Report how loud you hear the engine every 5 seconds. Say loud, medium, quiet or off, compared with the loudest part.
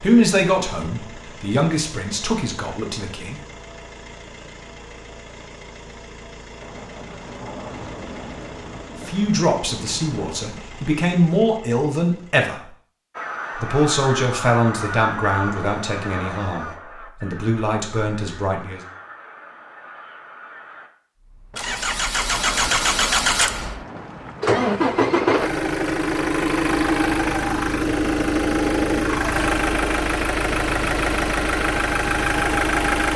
quiet, quiet, quiet, off, loud, loud, loud.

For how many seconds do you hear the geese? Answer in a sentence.
The geese can be heard for 8 seconds in total.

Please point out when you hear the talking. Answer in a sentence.
You can hear the talking from 0.0 to 3.4 s, from 9.1 to 12.7 s and from 13.6 to 18.8 s.